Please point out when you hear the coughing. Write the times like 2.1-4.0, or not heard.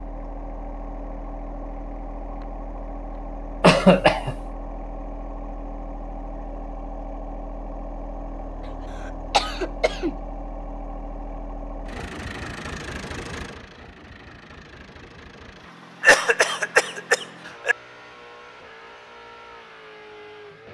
3.6-4.3, 9.3-10.1, 16.0-17.8.